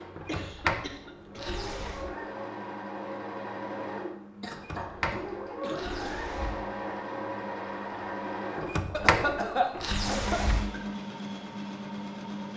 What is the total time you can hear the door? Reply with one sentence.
You can hear the door for 6 seconds altogether.